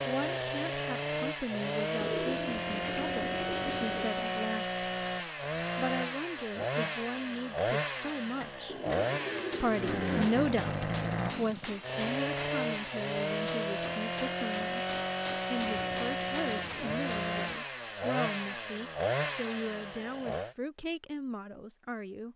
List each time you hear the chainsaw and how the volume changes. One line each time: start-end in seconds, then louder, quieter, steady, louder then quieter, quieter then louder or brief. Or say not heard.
0.0-20.6 steady.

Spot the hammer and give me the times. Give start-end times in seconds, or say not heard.
8.4-17.4.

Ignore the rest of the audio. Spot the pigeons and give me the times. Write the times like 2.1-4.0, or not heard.
1.9-4.2, 8.7-10.3, 15.6-17.6.